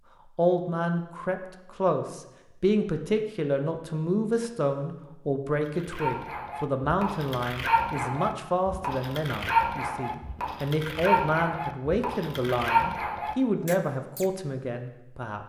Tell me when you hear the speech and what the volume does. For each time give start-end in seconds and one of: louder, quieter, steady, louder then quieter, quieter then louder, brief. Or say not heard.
0.3-15.4 steady.